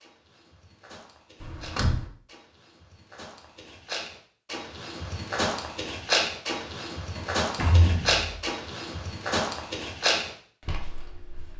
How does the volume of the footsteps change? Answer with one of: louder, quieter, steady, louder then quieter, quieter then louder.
louder.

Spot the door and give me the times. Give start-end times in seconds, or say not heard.
1.4-2.0, 7.2-8.4.